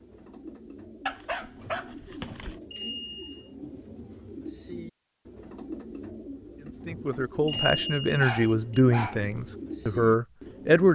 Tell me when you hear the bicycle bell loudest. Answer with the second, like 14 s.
8 s.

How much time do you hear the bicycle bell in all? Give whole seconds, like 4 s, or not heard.
2 s.